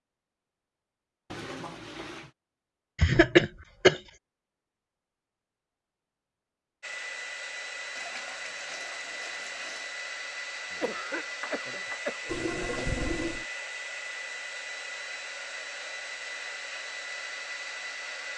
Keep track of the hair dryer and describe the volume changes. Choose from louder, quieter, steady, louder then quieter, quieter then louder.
steady.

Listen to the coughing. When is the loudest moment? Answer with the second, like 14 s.
3 s.